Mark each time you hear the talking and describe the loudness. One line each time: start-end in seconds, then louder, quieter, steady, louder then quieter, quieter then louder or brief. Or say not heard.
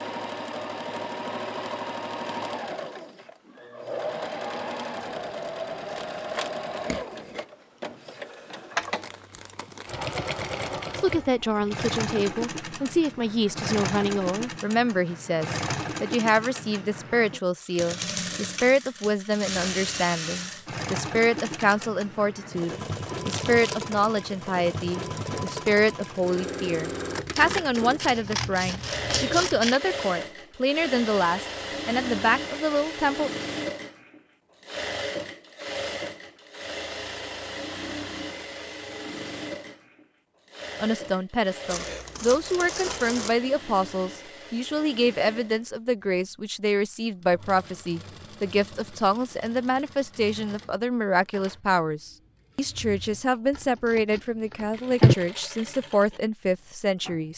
10.9-33.3 steady
40.8-57.3 steady.